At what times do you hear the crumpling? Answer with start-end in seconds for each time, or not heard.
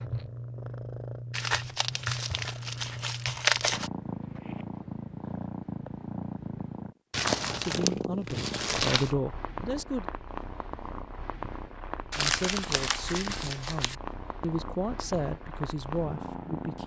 1.3-3.9, 7.1-9.2, 12.1-13.9.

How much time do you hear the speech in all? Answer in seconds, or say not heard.
7 s.